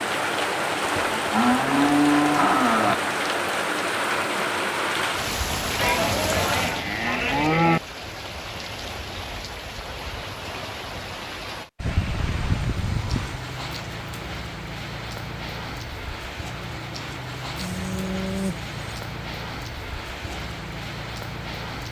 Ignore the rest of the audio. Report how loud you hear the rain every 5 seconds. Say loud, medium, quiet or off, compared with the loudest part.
loud, medium, medium, medium, medium.